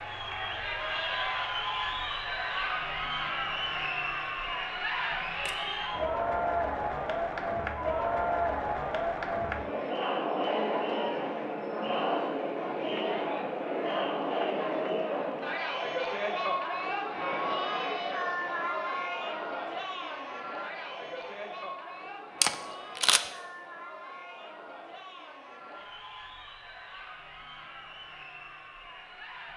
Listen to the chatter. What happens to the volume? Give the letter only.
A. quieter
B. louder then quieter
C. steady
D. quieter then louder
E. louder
A.